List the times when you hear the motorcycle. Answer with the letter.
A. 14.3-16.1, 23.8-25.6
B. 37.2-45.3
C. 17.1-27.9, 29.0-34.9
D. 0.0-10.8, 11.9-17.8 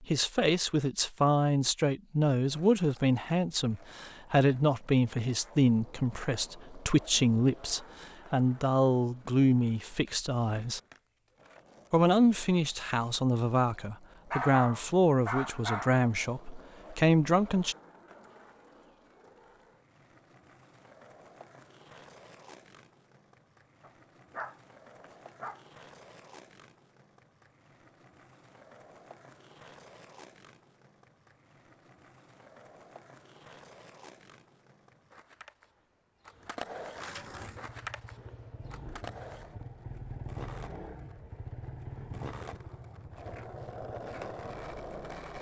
B.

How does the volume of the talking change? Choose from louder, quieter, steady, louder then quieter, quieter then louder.
steady.